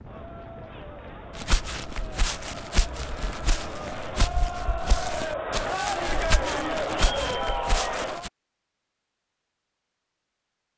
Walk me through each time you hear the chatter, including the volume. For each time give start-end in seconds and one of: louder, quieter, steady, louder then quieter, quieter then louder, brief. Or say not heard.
0.0-8.3 louder.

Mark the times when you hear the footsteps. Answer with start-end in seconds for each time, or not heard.
1.4-8.3.